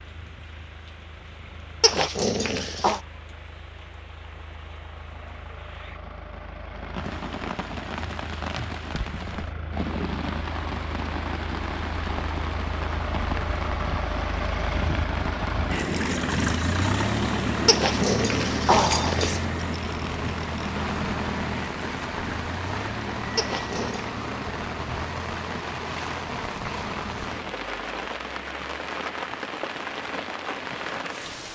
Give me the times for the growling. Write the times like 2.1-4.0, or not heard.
1.8-3.0, 17.6-19.4, 23.4-24.1.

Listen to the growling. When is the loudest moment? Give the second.
19 s.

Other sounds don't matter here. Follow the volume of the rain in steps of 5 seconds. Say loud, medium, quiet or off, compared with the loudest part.
quiet, loud, loud, loud, loud, loud, loud.